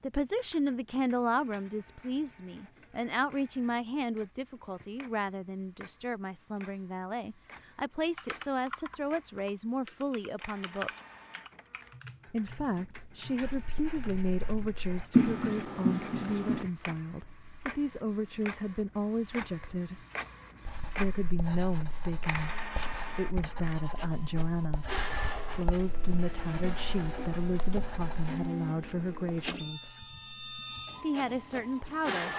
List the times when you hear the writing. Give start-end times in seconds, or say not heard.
13.4-16.6, 20.6-28.5.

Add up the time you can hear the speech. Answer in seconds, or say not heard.
29 s.